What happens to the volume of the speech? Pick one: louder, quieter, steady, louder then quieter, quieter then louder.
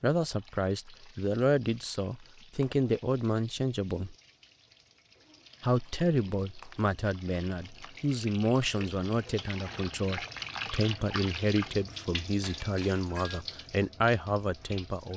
steady.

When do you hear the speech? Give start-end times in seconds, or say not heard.
0.0-4.2, 5.6-15.1.